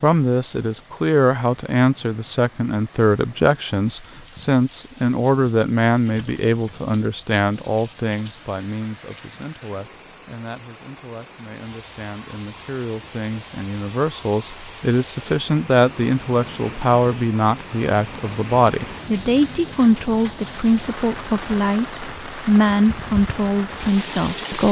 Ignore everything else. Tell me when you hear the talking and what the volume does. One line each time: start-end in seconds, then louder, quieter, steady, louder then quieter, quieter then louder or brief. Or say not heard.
0.0-24.6 quieter then louder.